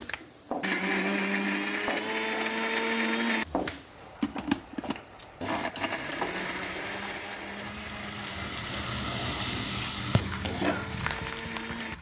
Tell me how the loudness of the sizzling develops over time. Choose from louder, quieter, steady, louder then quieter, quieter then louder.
louder.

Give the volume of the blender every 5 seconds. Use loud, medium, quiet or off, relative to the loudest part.
loud, medium, medium.